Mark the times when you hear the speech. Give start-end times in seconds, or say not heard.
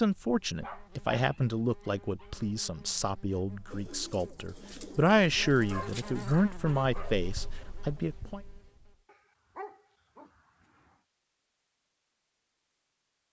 0.0-8.4.